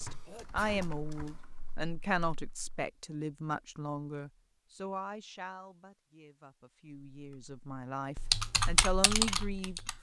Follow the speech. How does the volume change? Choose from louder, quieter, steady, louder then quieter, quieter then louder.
quieter then louder.